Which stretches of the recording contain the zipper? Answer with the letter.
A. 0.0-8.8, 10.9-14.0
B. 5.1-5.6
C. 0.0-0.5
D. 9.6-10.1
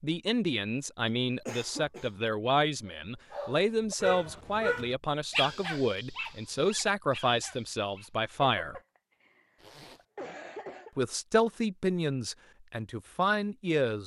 D.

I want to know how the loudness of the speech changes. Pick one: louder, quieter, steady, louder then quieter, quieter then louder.
steady.